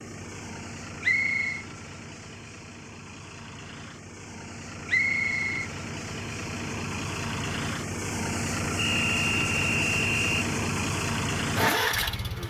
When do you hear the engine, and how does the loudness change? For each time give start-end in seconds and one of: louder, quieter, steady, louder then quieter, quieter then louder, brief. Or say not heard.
0.0-12.4 louder.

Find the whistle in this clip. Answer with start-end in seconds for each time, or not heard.
1.0-1.6, 4.8-5.7, 8.8-10.4.